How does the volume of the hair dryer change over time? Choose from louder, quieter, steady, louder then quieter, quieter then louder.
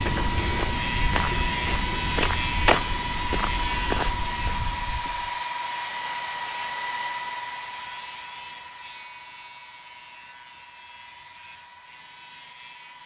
quieter.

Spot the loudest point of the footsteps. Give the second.
3 s.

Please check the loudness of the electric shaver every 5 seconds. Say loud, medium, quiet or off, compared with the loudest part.
loud, medium, quiet.